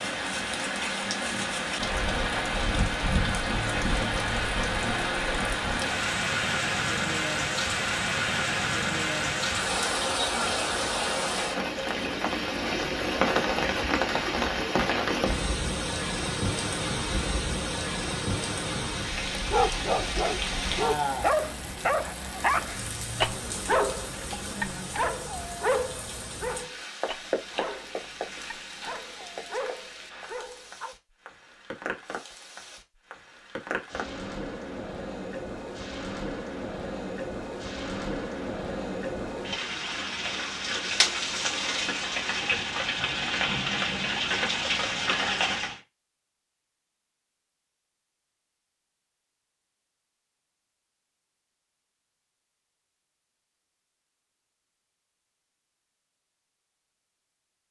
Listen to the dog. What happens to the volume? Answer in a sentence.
The volume of the dog goes down.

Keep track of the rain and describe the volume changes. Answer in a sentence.
The loudness of the rain goes down, then up.